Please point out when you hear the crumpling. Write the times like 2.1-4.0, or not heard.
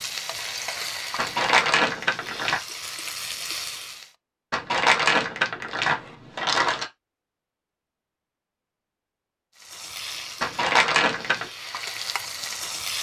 1.1-2.6, 4.5-6.8, 10.4-11.5.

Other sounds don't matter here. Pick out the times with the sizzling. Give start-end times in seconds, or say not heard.
0.0-4.1, 9.6-12.9.